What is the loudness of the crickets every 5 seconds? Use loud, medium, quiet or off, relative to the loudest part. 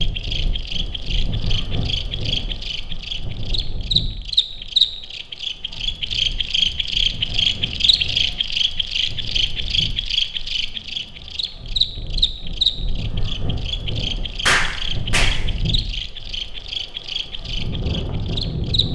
loud, loud, loud, medium.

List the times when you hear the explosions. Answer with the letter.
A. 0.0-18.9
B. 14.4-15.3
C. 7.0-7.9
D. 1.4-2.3
B.